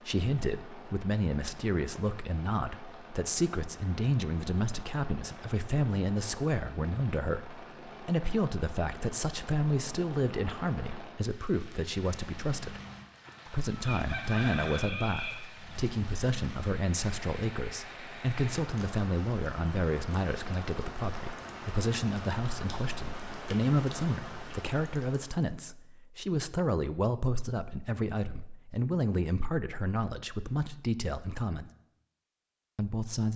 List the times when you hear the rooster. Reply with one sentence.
You can hear the rooster from 13.2 to 15.8 s.